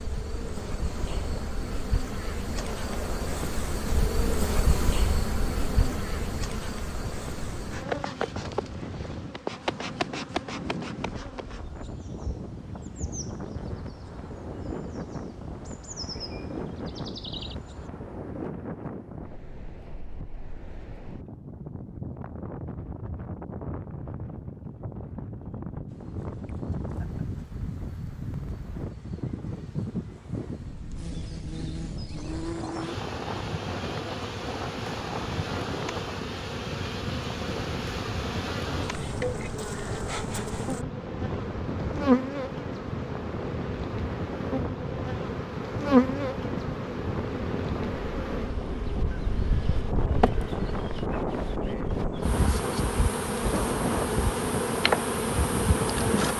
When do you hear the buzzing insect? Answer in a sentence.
The buzzing insect can be heard from 0.0 to 17.9 s and from 25.9 to 56.3 s.